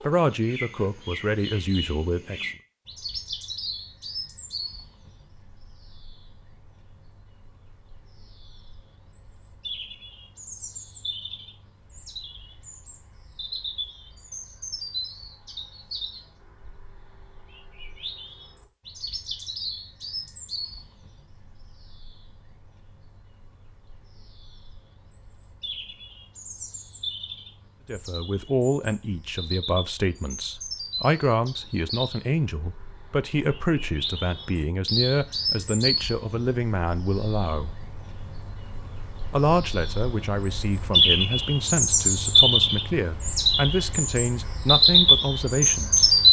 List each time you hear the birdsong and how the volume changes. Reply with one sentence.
The birdsong can be heard from 0.0 to 46.2 s, getting louder.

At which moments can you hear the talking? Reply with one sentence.
The talking can be heard from 0.1 to 2.5 s, from 27.9 to 37.8 s and from 39.3 to 46.1 s.